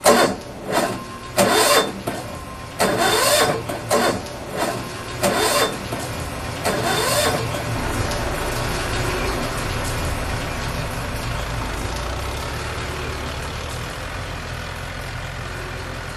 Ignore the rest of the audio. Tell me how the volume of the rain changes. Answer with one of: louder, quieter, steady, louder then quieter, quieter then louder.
louder then quieter.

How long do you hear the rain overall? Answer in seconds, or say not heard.
16 s.